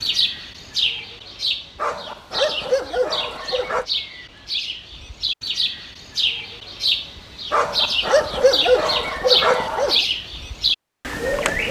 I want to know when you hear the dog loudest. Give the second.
9 s.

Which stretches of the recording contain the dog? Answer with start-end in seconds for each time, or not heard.
1.8-3.9, 7.5-10.0.